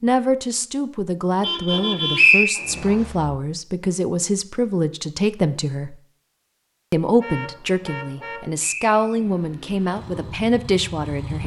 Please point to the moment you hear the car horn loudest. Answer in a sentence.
The loudest moment of the car horn is at 2 seconds.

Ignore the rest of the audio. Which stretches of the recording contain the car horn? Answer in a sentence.
The car horn can be heard from 1.4 to 3.1 s and from 7.2 to 8.5 s.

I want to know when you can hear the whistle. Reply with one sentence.
The whistle can be heard from 2.1 to 3.0 s and from 8.6 to 9.3 s.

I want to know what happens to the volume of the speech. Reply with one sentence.
The volume of the speech stays about the same.